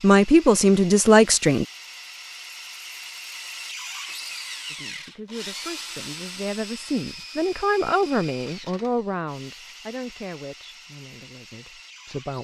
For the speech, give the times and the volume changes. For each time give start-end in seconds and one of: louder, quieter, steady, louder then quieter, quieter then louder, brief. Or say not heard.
0.0-1.6 brief
4.7-12.3 louder then quieter.